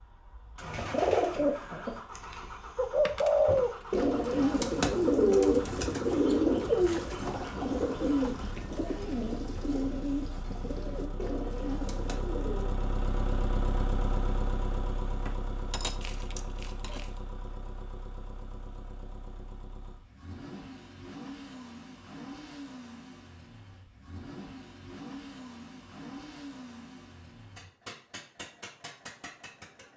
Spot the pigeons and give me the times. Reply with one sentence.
You can hear the pigeons from 0.6 to 12.8 s.